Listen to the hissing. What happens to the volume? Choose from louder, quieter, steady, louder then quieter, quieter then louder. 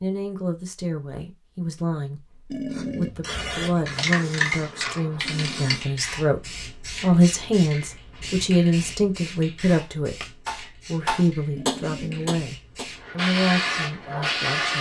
quieter then louder.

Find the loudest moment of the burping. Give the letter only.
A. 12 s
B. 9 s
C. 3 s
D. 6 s
C.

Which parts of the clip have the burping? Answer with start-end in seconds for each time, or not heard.
2.5-3.1, 5.2-5.9, 11.6-12.3.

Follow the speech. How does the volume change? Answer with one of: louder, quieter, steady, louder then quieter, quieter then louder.
louder then quieter.